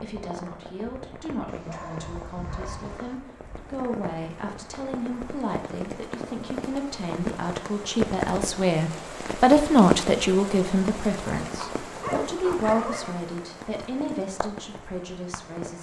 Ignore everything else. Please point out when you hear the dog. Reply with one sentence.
You can hear the dog from 1.4 to 3.2 s and from 11.6 to 13.2 s.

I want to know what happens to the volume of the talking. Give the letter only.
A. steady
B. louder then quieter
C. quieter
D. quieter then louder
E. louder
B.